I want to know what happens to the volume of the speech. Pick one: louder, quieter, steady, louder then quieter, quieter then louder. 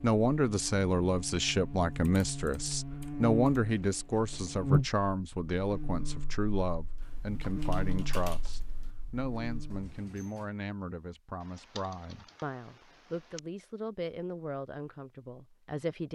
quieter.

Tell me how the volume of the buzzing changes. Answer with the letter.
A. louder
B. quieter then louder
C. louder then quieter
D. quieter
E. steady
C.